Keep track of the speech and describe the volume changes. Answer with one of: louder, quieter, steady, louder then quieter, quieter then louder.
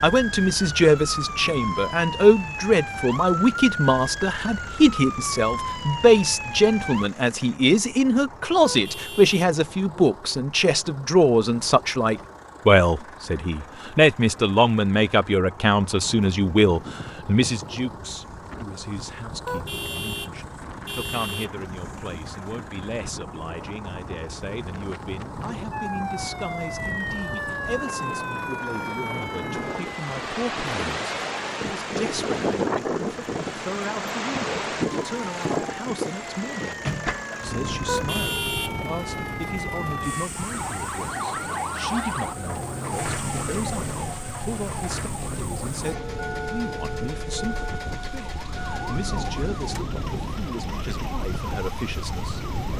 quieter.